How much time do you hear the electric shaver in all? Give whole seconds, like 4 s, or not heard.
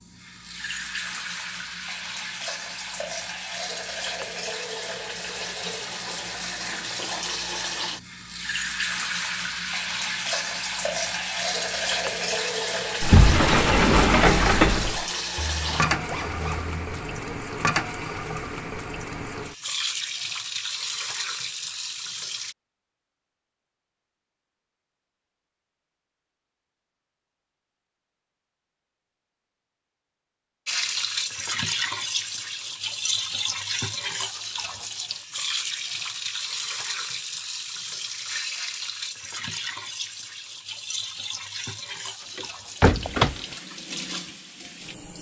not heard.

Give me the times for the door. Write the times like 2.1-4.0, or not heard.
13.0-15.1, 42.4-43.4.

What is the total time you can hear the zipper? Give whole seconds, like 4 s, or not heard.
2 s.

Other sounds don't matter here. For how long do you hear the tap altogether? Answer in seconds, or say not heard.
37 s.